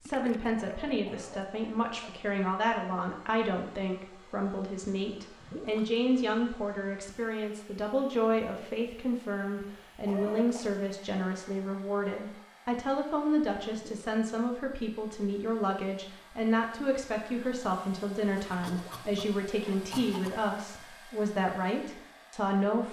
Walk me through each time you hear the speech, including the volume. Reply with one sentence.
The speech can be heard from 0.0 to 22.8 s, at a steady volume.